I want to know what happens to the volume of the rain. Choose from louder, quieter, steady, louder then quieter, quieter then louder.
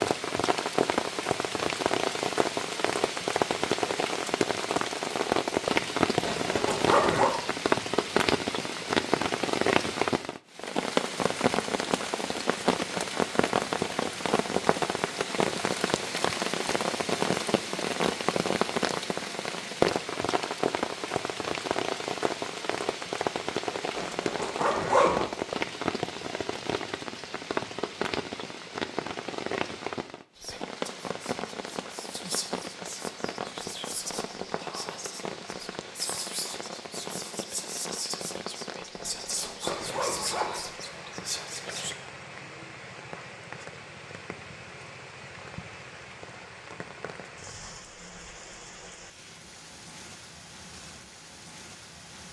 quieter.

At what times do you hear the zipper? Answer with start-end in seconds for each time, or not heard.
6.2-7.3, 23.9-25.2, 39.0-40.7.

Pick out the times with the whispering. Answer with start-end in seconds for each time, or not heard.
30.4-42.0.